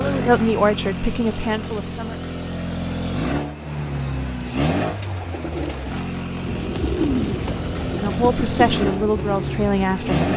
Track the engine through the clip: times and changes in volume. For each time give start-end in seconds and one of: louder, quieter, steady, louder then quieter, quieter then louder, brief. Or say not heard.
0.0-10.3 steady.